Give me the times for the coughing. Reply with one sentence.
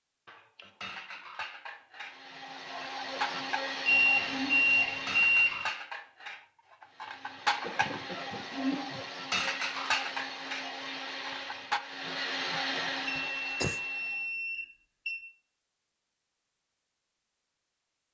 You can hear the coughing from 0.2 to 1.2 s, from 7.6 to 9.1 s and from 13.2 to 13.8 s.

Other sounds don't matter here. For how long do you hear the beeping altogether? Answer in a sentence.
The beeping can be heard for 4 seconds in total.